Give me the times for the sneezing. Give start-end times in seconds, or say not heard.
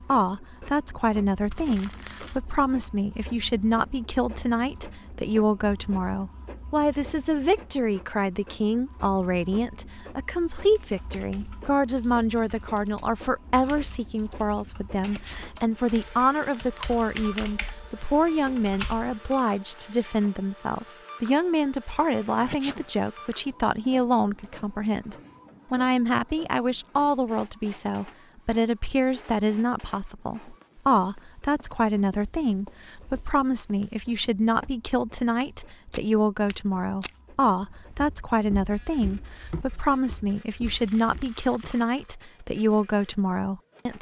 14.9-15.5, 22.4-22.9.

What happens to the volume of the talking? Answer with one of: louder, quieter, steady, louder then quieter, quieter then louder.
steady.